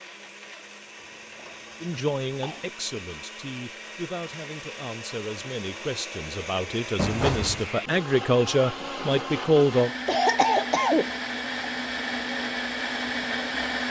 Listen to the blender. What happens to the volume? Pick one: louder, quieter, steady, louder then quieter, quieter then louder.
louder.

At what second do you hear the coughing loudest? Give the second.
10 s.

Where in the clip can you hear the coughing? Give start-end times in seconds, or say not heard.
0.9-2.7, 7.0-7.7, 9.8-11.1.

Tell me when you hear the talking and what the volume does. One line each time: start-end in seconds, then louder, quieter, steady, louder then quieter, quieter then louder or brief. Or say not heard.
1.8-9.9 louder.